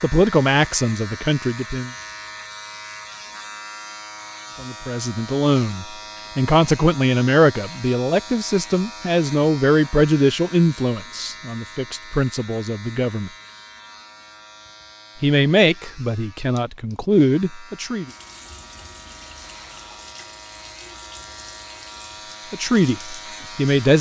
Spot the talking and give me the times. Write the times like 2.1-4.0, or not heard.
0.0-1.9, 4.6-13.3, 15.2-18.1, 22.5-23.9.